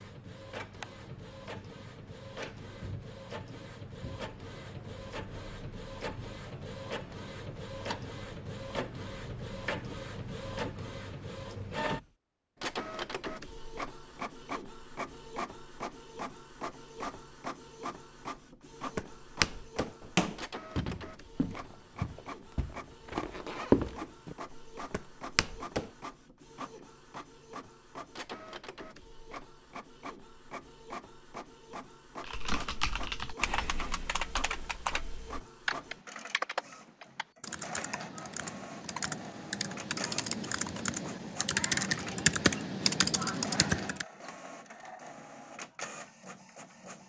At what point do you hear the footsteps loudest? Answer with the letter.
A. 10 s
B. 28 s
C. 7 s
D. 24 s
D.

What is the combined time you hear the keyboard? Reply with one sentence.
The keyboard can be heard for 12 seconds in total.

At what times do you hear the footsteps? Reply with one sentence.
The footsteps can be heard from 18.9 to 25.9 s.